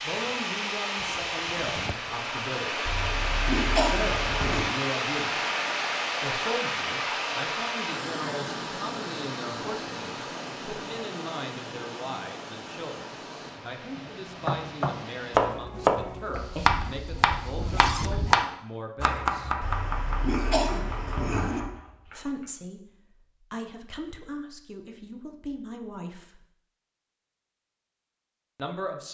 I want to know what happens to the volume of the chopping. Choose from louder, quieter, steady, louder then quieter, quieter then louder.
quieter.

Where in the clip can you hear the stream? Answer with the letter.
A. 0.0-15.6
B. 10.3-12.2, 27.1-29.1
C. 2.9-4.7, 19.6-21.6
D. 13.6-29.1
A.